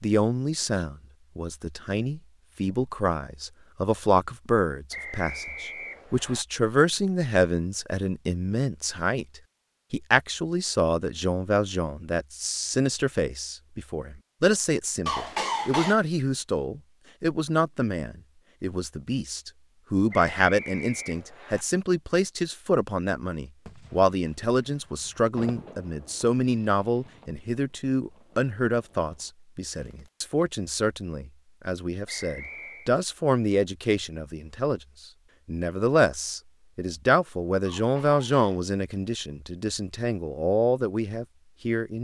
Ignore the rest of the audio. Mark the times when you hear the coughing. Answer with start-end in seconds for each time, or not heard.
15.1-16.0, 37.6-38.6.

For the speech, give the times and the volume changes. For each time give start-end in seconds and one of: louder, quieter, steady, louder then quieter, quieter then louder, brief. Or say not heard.
0.0-34.8 steady
35.5-41.9 quieter then louder.